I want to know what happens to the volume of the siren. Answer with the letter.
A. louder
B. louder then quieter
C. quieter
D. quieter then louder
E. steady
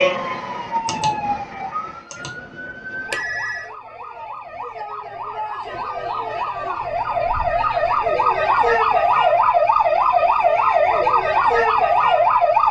D.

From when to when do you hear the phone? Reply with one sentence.
You can hear the phone from 3.1 to 3.7 s.